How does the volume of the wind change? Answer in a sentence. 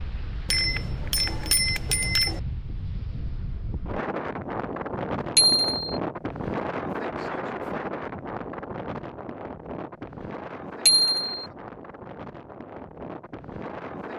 The loudness of the wind goes up, then down.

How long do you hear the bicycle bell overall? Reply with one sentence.
You can hear the bicycle bell for 3 seconds altogether.